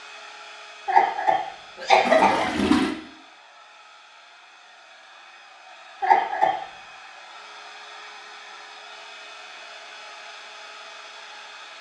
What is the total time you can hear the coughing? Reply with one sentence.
You can hear the coughing for 2 seconds altogether.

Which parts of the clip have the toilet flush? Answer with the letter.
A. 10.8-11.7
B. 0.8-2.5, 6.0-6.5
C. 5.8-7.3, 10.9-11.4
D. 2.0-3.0
D.